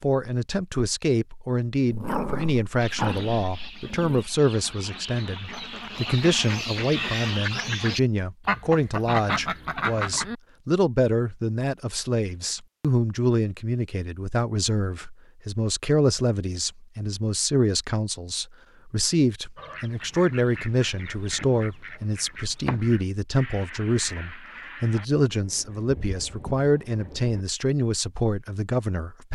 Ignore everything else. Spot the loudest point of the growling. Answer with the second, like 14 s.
2 s.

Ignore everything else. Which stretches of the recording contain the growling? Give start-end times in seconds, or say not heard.
1.9-4.2.